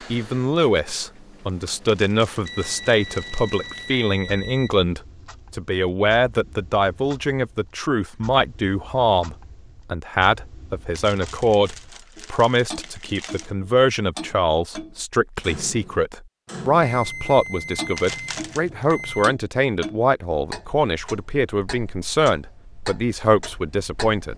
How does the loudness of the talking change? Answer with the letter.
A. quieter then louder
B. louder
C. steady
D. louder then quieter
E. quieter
C.